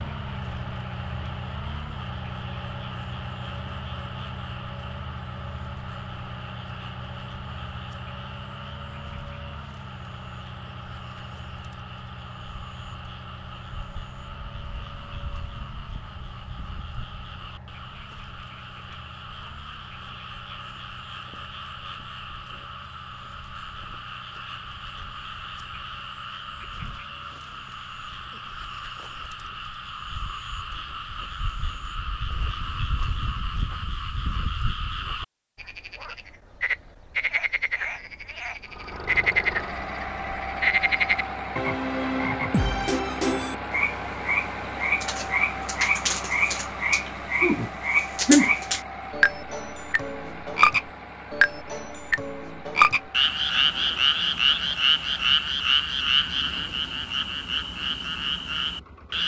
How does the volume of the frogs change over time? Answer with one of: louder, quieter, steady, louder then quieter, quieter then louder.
louder.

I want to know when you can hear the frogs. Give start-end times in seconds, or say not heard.
0.0-59.2.